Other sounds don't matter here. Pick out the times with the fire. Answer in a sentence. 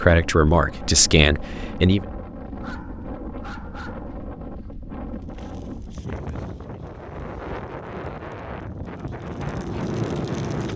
The fire can be heard from 5.2 to 10.7 s.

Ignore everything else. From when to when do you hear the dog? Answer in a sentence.
You can hear the dog from 2.6 to 4.2 s.